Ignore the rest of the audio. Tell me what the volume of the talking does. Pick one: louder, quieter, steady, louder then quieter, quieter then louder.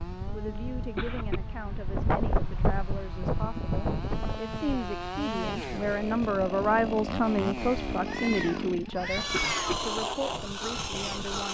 louder then quieter.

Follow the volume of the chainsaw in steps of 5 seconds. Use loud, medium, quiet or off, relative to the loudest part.
medium, loud, loud.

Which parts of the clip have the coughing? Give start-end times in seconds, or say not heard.
0.6-1.4, 8.9-9.8.